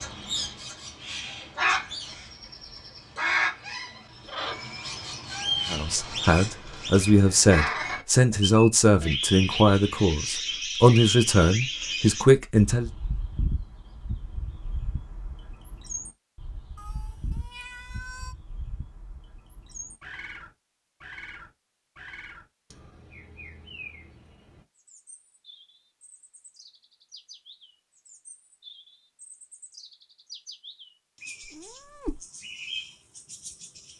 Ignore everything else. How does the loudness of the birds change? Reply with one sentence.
The loudness of the birds goes down.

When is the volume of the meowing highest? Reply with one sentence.
The volume of the meowing peaks at 32 seconds.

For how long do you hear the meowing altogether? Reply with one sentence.
The meowing can be heard for 3 seconds in total.